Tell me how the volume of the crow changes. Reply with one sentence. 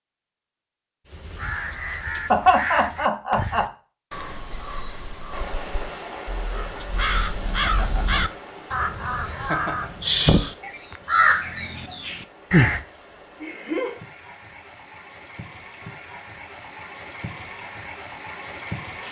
The volume of the crow goes down, then up.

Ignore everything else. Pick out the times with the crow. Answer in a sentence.
The crow can be heard from 1.1 to 12.8 s.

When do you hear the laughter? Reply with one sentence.
You can hear the laughter from 2.3 to 3.7 s, from 7.5 to 8.2 s, from 9.2 to 9.9 s and from 13.4 to 13.9 s.